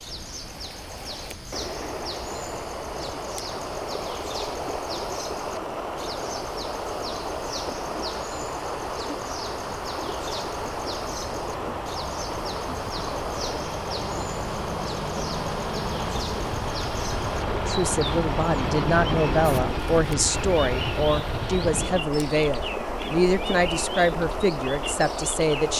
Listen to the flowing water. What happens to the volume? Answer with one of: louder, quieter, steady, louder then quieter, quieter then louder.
steady.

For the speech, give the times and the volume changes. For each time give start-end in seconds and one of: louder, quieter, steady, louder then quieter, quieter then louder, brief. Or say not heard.
17.6-25.7 steady.